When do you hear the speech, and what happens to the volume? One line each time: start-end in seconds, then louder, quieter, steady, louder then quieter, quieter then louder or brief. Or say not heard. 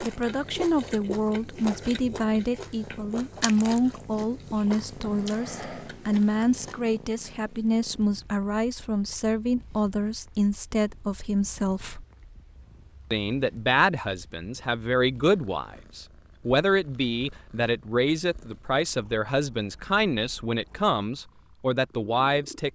0.0-12.1 steady
13.1-22.6 steady.